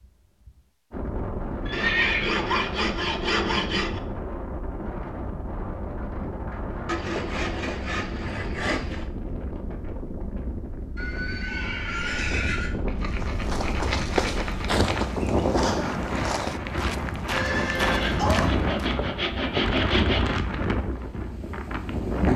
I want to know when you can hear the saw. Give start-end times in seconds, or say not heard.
1.7-4.0, 6.8-9.1, 12.8-15.2, 17.9-20.4.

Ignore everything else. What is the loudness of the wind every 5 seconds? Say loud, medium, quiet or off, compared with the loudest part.
medium, medium, medium, loud, loud.